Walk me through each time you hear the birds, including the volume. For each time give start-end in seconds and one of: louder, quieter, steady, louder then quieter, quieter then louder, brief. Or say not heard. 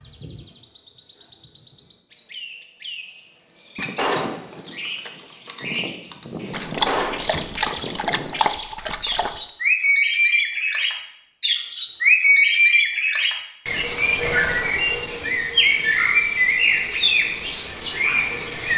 0.0-18.7 louder.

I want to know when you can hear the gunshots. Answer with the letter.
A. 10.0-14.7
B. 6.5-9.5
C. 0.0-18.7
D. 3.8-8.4
D.